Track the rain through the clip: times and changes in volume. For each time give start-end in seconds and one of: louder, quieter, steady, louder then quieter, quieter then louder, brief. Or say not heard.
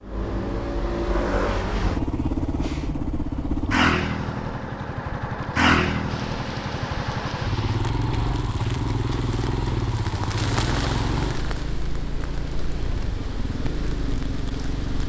6.0-15.0 louder then quieter.